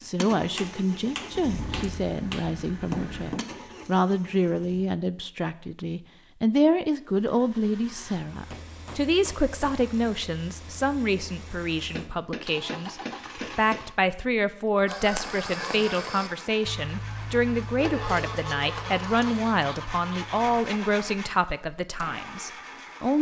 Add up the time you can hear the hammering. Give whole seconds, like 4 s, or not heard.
8 s.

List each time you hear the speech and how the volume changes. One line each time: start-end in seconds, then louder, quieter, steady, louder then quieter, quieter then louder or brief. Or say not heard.
0.0-23.1 steady.